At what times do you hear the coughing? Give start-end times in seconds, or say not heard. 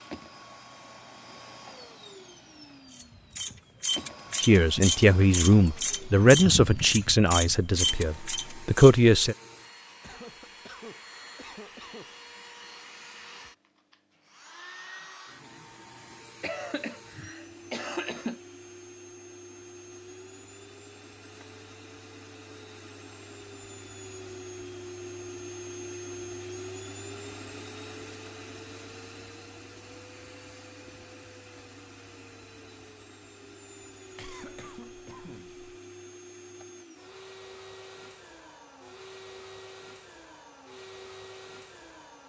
10.0-12.2, 16.4-18.4, 34.1-35.6.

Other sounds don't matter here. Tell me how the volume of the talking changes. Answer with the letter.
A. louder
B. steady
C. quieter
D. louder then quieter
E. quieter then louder
E.